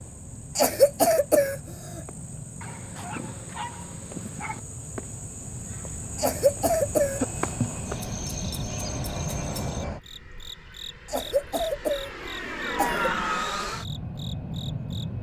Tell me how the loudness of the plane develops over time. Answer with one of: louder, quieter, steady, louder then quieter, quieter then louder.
louder.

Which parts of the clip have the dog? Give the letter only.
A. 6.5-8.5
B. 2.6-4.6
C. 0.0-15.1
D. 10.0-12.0
B.